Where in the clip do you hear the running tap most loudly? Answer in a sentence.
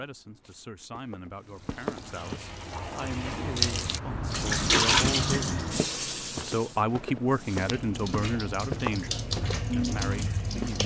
The loudest moment of the running tap is at 5 seconds.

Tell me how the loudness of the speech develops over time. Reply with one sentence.
The loudness of the speech goes up, then down.